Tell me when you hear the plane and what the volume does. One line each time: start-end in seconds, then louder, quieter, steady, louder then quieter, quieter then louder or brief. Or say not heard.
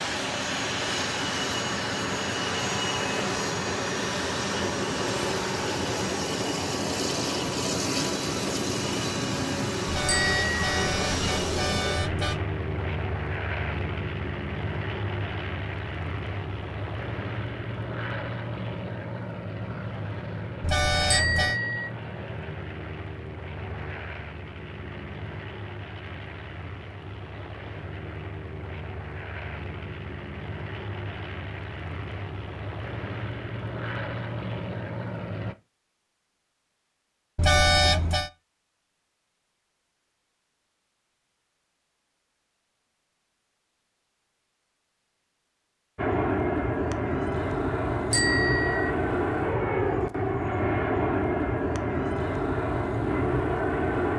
0.0-35.5 quieter
46.0-54.1 steady.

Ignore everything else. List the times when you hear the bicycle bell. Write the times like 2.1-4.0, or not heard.
10.1-10.7, 21.1-21.9, 48.1-48.9.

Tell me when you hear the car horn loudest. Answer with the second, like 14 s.
38 s.